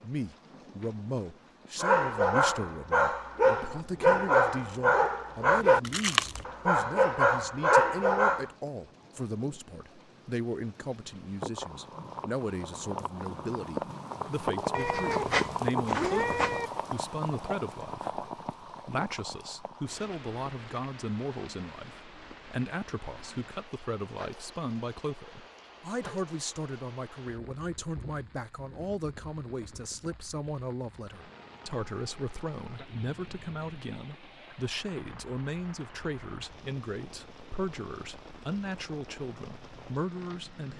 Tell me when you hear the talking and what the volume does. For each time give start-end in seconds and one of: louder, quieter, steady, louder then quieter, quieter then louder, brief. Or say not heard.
0.0-40.7 steady.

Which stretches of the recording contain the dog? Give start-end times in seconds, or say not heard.
1.8-8.5.